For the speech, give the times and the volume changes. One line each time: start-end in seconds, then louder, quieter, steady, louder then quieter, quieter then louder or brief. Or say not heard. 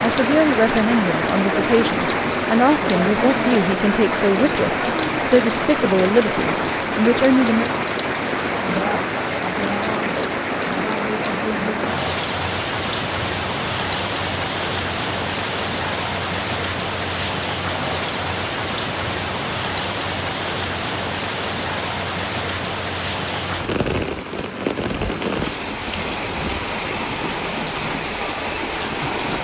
0.0-7.7 steady.